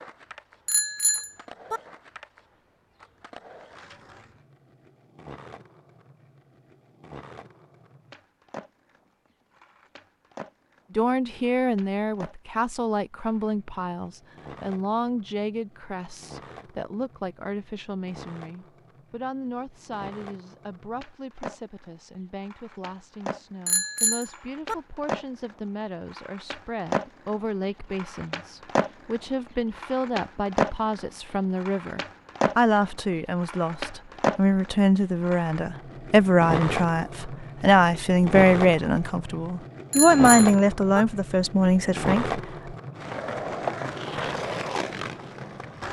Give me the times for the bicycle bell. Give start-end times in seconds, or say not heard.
0.7-1.8, 23.6-24.8, 39.9-41.0.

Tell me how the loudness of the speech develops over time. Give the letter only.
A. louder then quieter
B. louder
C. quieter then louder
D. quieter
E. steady
C.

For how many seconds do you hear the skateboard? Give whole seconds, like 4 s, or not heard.
46 s.